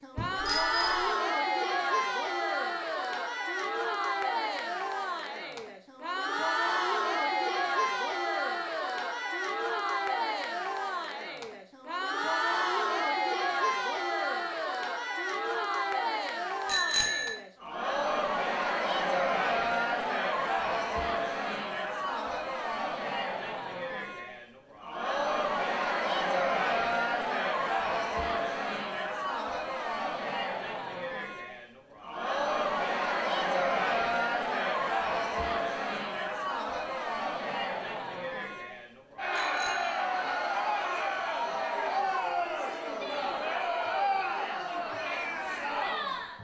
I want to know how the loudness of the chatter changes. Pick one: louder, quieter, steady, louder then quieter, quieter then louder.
steady.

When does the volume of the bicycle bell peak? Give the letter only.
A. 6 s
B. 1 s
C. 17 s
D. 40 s
C.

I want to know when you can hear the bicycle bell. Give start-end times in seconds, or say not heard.
0.1-1.1, 16.6-17.4, 39.4-40.0.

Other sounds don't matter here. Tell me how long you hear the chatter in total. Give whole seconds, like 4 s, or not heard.
46 s.